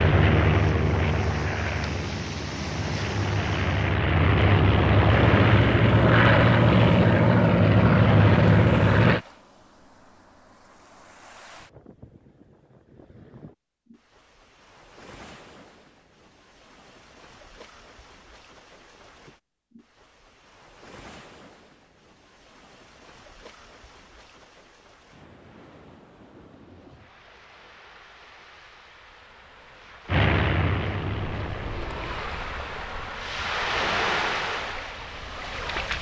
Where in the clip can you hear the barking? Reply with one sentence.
The barking can't be heard in this clip.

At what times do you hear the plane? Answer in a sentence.
You can hear the plane from 0.0 to 9.2 s and from 30.1 to 32.2 s.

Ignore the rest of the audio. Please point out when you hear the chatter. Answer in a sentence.
You can't hear the chatter here.